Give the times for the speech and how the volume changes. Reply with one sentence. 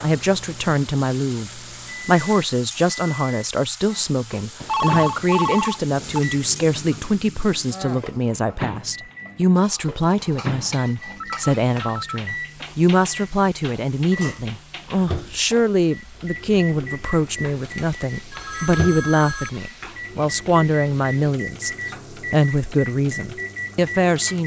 You can hear the speech from 0.0 to 24.4 s, at a steady volume.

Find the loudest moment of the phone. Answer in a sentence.
The loudest moment of the phone is at 5 seconds.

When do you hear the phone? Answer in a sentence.
The phone can be heard from 4.6 to 6.2 s, from 11.2 to 12.8 s and from 18.3 to 19.6 s.